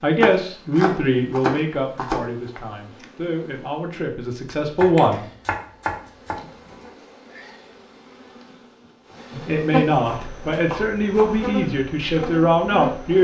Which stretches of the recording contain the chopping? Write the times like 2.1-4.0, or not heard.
0.2-2.2, 4.5-6.8, 9.9-11.5.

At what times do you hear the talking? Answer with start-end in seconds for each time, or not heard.
0.0-5.2, 9.3-13.1.